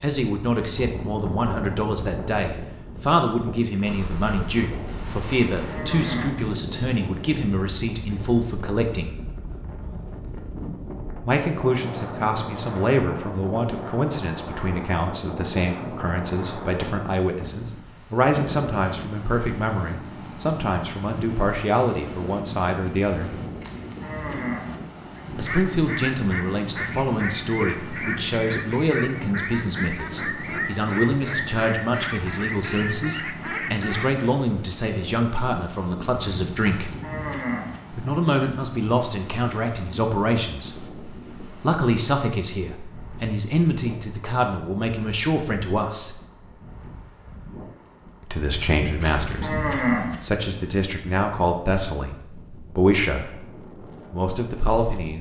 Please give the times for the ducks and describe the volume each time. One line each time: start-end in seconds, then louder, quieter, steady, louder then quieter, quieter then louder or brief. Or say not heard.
25.2-34.2 steady.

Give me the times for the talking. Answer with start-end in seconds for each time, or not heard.
0.0-9.2, 11.2-23.4, 25.4-37.0, 37.9-46.1, 48.2-55.1.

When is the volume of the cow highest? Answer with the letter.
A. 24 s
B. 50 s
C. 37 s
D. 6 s
B.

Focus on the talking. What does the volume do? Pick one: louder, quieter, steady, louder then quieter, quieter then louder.
steady.